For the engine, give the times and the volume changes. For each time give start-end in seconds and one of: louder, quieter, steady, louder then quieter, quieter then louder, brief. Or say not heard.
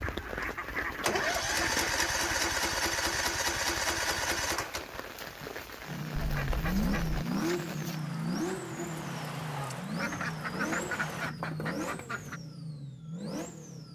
0.0-13.9 quieter.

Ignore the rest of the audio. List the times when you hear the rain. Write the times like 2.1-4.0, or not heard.
0.0-11.3.